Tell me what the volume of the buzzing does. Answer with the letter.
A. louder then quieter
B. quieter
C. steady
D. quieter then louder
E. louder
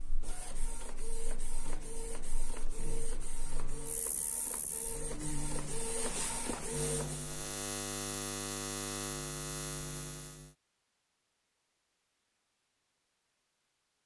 E.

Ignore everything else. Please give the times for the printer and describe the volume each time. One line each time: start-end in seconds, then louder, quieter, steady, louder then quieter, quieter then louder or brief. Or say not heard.
0.0-7.3 louder.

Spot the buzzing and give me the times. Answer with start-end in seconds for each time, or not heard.
0.0-10.6.